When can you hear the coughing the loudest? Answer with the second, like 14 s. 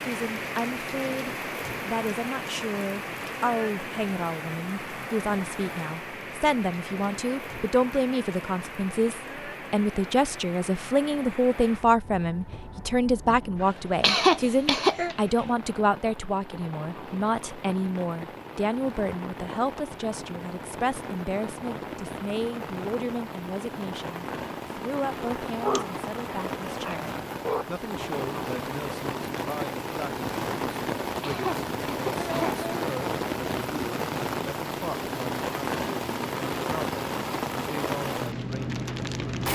14 s.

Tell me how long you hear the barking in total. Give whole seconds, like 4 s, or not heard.
2 s.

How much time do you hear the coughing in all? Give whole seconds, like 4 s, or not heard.
3 s.